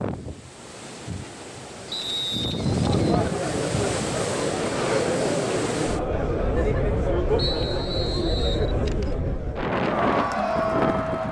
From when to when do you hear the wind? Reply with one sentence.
The wind can be heard from 0.0 to 11.2 s.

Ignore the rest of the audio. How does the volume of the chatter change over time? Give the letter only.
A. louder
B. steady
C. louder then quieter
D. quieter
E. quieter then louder
B.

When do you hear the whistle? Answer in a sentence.
The whistle can be heard from 1.9 to 2.4 s and from 7.3 to 8.7 s.